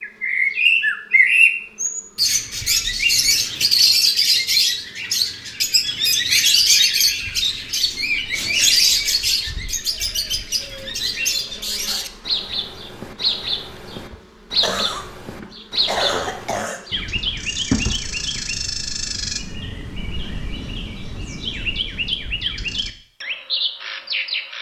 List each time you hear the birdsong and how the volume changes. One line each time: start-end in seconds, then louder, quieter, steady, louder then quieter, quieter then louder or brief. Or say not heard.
0.0-24.5 quieter.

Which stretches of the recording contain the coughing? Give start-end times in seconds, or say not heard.
14.6-15.1, 15.8-16.9.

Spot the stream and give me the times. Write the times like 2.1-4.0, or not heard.
not heard.